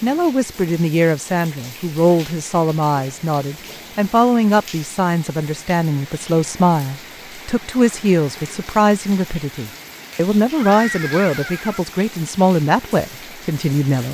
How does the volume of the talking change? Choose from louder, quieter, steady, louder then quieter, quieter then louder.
steady.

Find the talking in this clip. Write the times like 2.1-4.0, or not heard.
0.0-14.0.